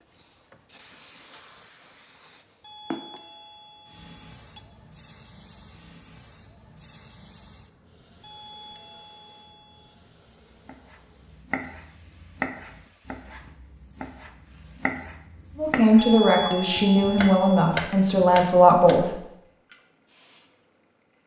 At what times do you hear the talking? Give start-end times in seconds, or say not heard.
15.6-19.1.